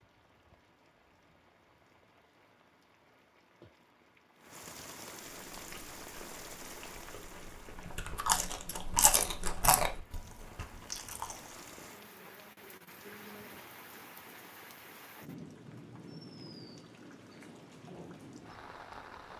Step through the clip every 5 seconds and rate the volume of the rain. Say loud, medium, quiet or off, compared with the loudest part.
medium, loud, loud, loud.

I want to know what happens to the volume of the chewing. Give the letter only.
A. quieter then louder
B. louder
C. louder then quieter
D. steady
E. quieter
C.